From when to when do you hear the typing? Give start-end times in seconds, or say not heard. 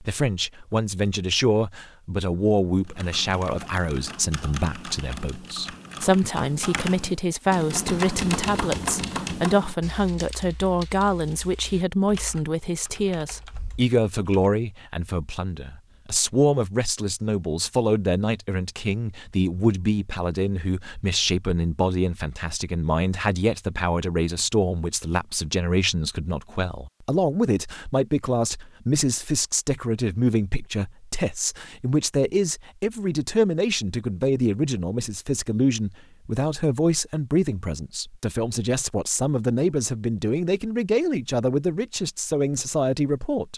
2.8-14.3.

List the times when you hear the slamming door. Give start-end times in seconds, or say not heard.
not heard.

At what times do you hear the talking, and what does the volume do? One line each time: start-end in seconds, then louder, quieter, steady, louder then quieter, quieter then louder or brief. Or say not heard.
0.0-43.5 steady.